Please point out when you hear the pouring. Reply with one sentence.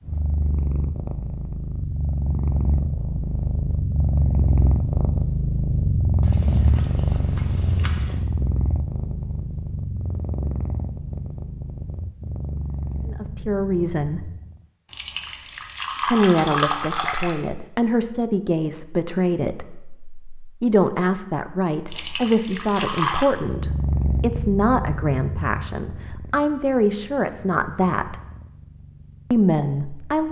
You can hear the pouring from 6.2 to 8.2 s, from 14.9 to 17.4 s and from 21.9 to 23.2 s.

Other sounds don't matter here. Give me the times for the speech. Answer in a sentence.
You can hear the speech from 13.1 to 14.3 s, from 16.1 to 28.1 s and from 29.3 to 30.2 s.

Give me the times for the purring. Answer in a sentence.
The purring can be heard from 0.0 to 14.7 s and from 23.4 to 30.2 s.